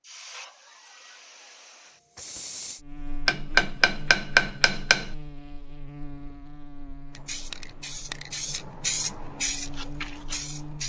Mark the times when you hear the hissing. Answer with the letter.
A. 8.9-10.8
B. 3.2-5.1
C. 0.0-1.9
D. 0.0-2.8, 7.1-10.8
D.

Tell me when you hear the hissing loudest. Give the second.
9 s.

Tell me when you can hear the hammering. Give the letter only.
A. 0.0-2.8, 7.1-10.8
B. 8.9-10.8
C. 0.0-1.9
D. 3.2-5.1
D.